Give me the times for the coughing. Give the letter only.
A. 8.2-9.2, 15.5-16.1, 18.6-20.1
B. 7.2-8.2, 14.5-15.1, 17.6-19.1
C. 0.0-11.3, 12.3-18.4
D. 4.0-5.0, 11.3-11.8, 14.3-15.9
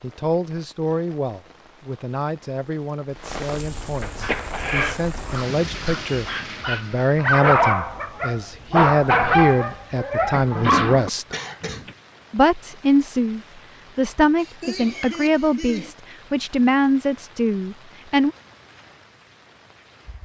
D.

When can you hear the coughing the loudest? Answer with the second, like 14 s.
5 s.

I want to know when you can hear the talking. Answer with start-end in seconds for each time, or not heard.
0.0-11.3, 12.3-18.4.